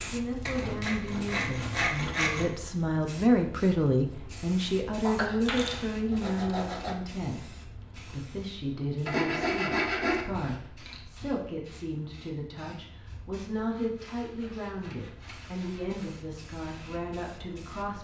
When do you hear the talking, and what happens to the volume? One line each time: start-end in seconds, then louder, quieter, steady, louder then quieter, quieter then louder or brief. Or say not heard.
0.1-17.9 quieter.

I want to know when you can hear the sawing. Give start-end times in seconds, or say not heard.
0.5-2.5, 5.0-7.0, 9.1-10.2, 13.7-16.2.